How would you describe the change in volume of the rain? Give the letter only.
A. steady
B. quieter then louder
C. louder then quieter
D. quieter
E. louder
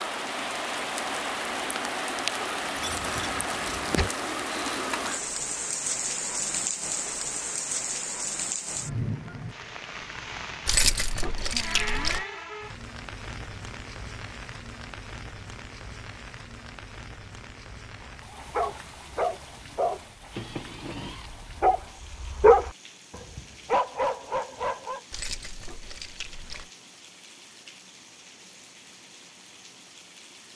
D.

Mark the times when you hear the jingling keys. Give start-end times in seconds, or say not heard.
2.7-4.1, 10.7-12.2, 25.1-26.7.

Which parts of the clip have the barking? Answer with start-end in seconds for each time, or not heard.
18.0-22.7, 23.4-25.0.